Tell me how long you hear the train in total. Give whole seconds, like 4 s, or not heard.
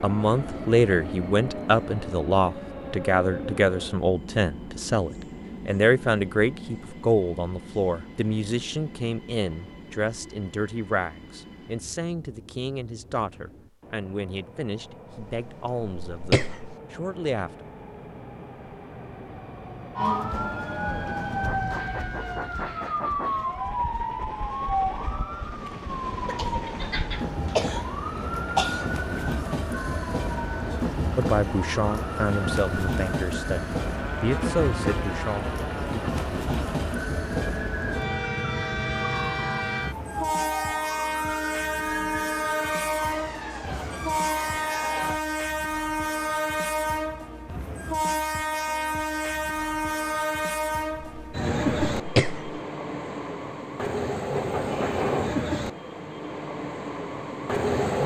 58 s.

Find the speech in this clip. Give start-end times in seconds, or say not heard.
0.0-17.6, 31.1-36.0.